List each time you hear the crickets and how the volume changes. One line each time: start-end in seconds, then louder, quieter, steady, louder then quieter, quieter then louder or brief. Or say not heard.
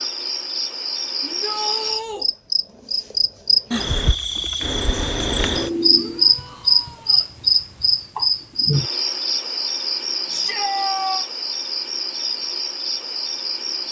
0.0-13.8 louder then quieter.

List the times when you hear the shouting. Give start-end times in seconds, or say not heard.
1.2-2.2, 5.9-7.3, 10.3-11.2.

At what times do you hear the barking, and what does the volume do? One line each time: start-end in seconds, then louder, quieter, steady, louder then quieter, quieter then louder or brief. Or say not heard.
not heard.